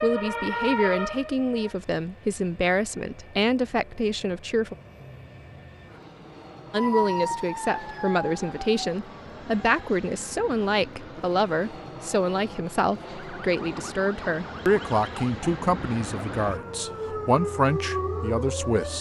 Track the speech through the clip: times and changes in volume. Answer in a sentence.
The speech can be heard from 0.0 to 4.8 s, at a steady volume; and from 6.7 to 18.9 s, at a steady volume.